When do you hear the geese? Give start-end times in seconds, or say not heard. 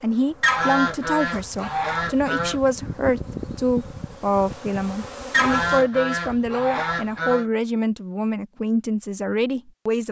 0.4-2.6, 5.3-7.5.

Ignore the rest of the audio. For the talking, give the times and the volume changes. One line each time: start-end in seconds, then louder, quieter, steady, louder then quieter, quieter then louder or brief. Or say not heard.
0.0-10.0 steady.